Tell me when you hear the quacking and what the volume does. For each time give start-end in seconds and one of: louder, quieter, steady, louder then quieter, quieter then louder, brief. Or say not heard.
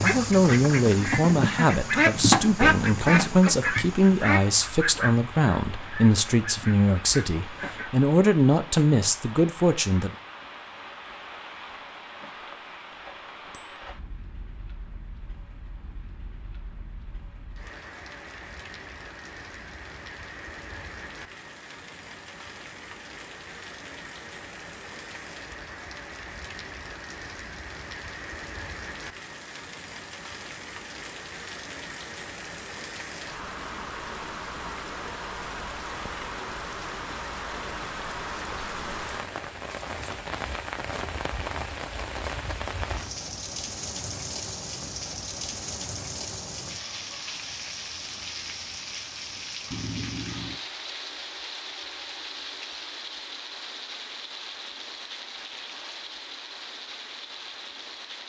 0.0-7.9 louder then quieter.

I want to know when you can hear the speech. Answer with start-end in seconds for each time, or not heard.
0.0-10.2.